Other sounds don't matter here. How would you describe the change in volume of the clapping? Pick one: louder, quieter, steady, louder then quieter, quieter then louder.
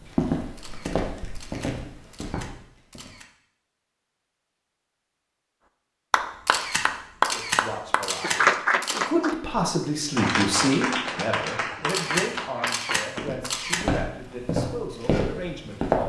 quieter.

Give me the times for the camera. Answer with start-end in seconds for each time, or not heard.
0.6-3.2, 6.5-9.1, 11.8-13.8.